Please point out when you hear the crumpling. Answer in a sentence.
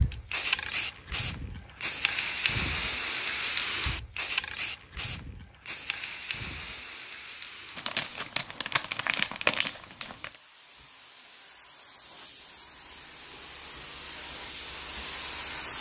The crumpling can be heard from 7.8 to 10.3 s.